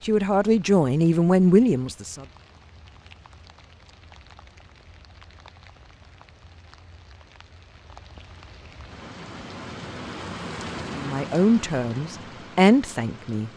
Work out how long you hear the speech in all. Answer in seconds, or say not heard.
5 s.